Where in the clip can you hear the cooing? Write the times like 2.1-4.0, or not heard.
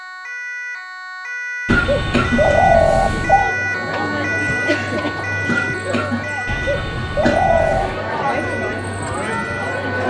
1.6-3.5, 6.5-8.1.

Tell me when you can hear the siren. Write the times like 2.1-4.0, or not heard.
0.0-10.0.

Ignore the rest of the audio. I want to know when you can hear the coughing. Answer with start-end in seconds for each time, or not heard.
1.6-2.4, 5.5-7.4.